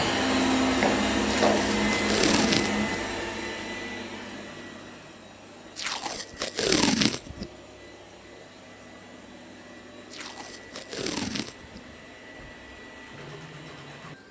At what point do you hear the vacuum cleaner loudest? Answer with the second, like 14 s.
1 s.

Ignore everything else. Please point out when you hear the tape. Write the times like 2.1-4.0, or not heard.
1.2-2.9, 5.8-7.5, 10.1-11.8.